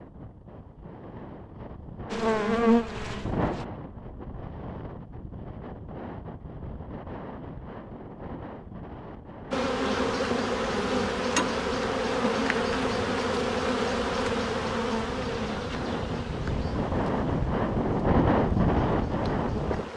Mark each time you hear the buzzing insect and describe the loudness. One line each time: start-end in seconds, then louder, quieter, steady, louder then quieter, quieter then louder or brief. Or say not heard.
2.1-3.6 brief
9.5-19.9 quieter.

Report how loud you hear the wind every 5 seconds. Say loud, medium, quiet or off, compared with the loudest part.
medium, quiet, quiet, loud.